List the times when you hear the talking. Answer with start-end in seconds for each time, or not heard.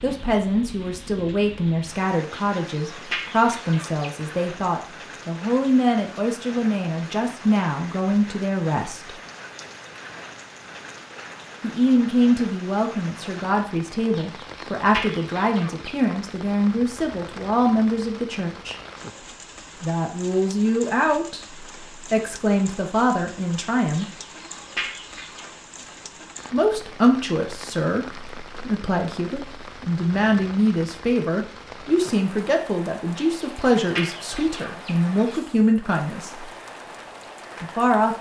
0.0-9.2, 11.6-18.8, 19.8-24.1, 26.5-36.5, 37.6-38.1.